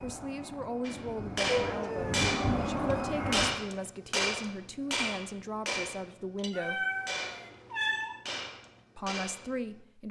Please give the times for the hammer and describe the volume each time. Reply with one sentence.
You can hear the hammer from 0.8 to 9.8 s, getting quieter.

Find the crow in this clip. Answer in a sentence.
The crow can't be heard in this clip.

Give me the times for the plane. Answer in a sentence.
The plane can be heard from 0.0 to 3.6 s.